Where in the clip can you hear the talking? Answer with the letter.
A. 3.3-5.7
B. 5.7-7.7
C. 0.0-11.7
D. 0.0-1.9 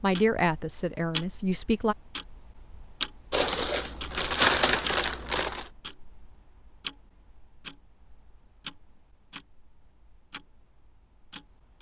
D.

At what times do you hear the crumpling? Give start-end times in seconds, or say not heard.
3.3-5.7.